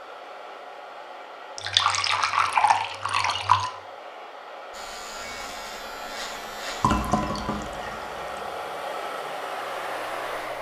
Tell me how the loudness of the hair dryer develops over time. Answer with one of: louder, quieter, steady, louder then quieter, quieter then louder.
louder.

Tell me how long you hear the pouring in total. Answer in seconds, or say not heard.
4 s.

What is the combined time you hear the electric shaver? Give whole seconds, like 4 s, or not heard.
6 s.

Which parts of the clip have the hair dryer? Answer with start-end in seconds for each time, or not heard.
0.0-10.5.